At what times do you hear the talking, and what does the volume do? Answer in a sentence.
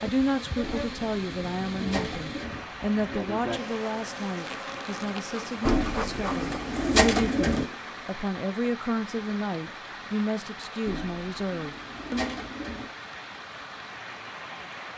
The talking can be heard from 0.0 to 12.4 s, at a steady volume.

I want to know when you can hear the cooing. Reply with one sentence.
The cooing can be heard from 0.6 to 2.6 s, from 5.7 to 7.7 s and from 10.8 to 12.8 s.